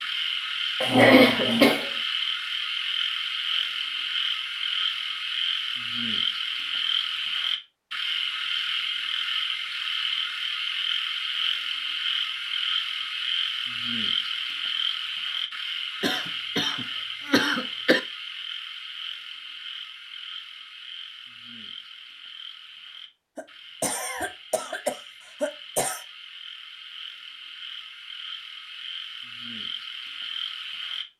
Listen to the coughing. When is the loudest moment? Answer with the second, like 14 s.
1 s.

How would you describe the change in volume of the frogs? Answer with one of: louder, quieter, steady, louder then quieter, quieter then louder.
quieter.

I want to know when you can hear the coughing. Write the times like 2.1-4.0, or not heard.
0.8-1.9, 16.0-18.0, 23.4-26.1.